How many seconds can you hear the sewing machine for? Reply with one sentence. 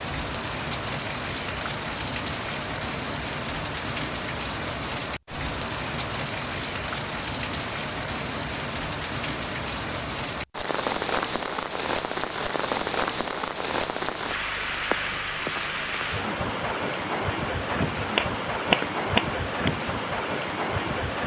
The sewing machine can't be heard in this clip.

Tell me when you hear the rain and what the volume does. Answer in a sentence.
The rain can be heard from 0.0 to 21.2 s, at a steady volume.